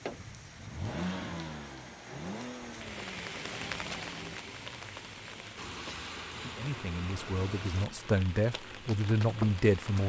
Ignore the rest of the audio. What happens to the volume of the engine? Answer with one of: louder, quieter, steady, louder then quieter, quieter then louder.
quieter.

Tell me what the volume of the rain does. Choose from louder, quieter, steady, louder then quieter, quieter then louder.
louder.